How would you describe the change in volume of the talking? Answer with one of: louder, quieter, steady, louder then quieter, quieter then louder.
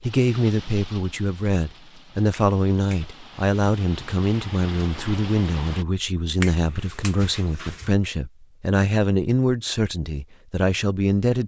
steady.